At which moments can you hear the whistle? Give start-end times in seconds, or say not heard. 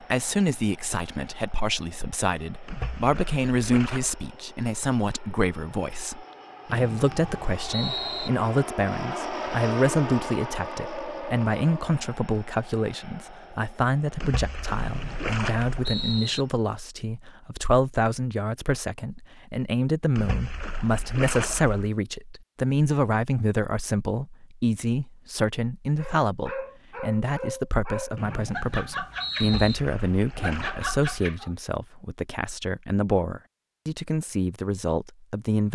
6.7-8.3, 14.8-16.4, 28.1-29.8.